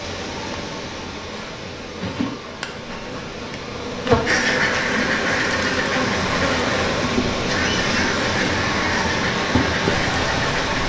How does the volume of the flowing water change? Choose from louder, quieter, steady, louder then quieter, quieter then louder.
louder.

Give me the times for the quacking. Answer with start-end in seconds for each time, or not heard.
4.2-10.8.